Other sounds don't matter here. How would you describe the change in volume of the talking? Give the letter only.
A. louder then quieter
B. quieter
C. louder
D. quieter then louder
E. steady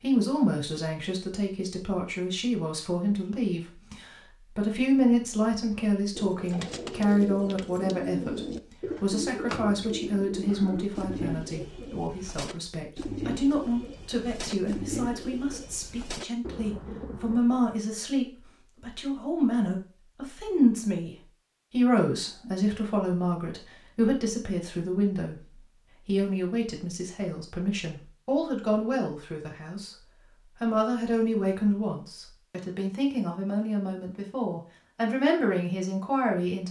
E.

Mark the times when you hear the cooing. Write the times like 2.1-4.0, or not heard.
6.2-17.4.